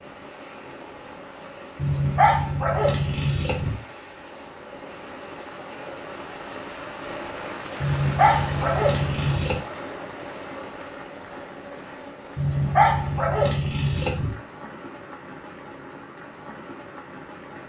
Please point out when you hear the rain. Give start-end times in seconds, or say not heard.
0.0-17.6.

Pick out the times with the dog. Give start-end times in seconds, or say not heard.
1.8-3.8, 7.8-9.6, 12.3-14.3.